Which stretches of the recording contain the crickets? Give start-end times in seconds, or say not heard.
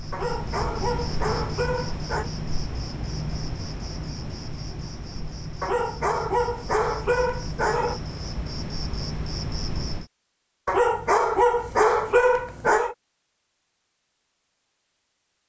0.0-10.1.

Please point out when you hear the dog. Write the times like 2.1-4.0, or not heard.
0.1-2.3, 5.6-8.0, 10.7-12.9.